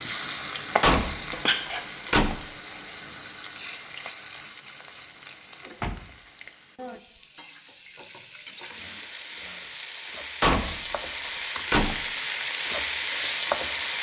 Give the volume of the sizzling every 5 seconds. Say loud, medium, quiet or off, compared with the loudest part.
loud, quiet, loud.